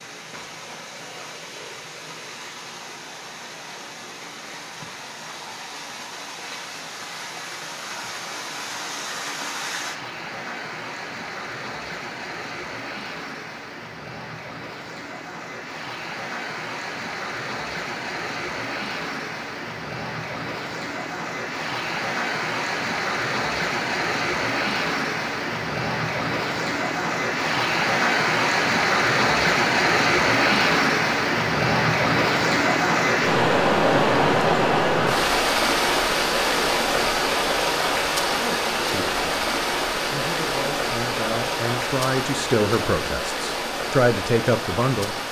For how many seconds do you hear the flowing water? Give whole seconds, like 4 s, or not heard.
45 s.